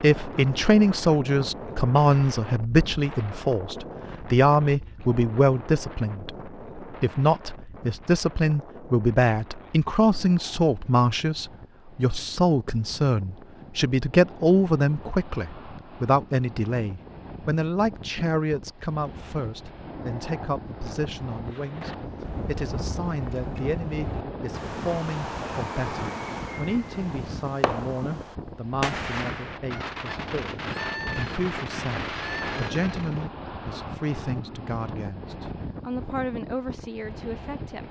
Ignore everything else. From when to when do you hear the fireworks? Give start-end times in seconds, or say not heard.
21.4-33.3.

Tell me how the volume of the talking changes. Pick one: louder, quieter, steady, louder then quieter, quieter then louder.
quieter.